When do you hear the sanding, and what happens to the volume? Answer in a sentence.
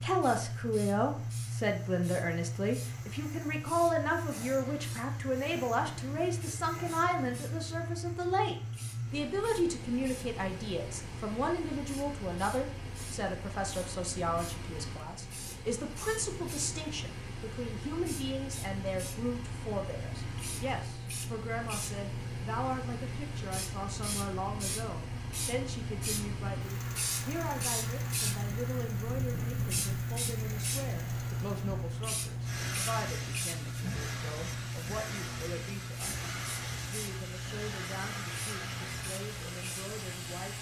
You can't hear the sanding here.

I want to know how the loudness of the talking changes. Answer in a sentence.
The volume of the talking goes down.